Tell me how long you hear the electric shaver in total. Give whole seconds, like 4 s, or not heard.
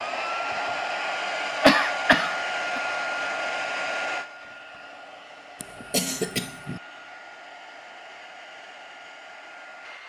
not heard.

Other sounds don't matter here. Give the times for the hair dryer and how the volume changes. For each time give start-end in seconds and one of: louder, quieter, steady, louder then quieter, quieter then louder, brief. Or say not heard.
0.0-10.0 quieter.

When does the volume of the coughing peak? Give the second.
2 s.